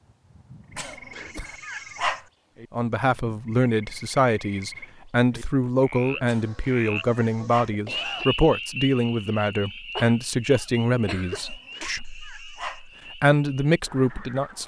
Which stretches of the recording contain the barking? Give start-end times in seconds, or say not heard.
0.8-2.2, 6.2-7.8, 11.3-12.8.